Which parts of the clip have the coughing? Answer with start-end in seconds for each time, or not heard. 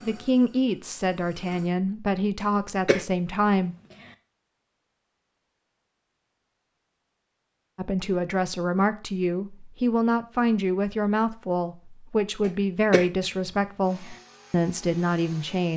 2.4-3.0, 12.4-13.1.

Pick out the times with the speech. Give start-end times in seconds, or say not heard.
0.0-3.8, 7.8-15.7.